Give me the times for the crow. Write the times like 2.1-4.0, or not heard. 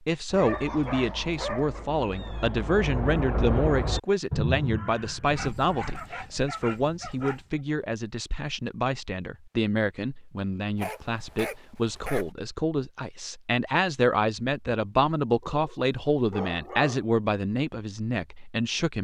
0.3-6.0.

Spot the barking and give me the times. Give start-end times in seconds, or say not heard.
0.3-1.9, 5.2-7.5, 10.8-12.2, 15.4-17.1.